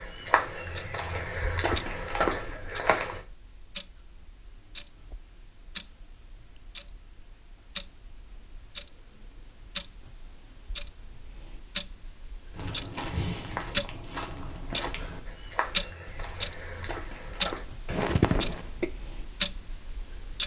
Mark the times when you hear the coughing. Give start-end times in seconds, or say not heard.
17.9-18.9.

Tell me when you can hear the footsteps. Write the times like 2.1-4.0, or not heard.
0.0-3.2, 12.5-17.6.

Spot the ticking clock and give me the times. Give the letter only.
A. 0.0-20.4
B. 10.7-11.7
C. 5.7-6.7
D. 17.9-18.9
A.